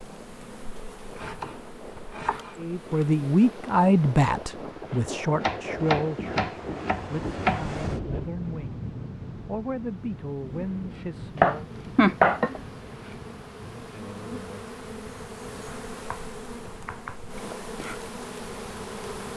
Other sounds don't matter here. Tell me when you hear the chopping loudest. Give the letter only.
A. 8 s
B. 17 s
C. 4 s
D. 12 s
D.